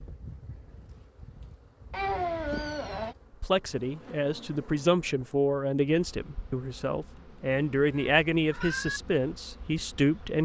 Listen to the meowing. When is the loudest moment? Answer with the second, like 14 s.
2 s.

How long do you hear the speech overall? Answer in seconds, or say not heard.
7 s.